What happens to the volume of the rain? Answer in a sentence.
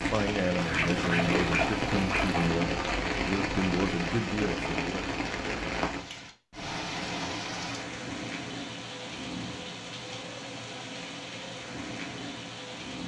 The volume of the rain goes down.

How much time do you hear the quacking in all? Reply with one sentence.
The quacking can be heard for 2 seconds in total.